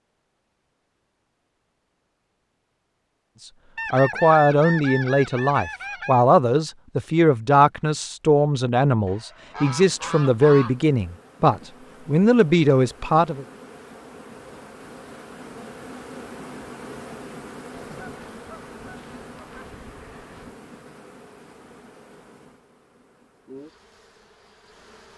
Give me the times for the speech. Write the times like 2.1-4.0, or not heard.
3.9-13.4.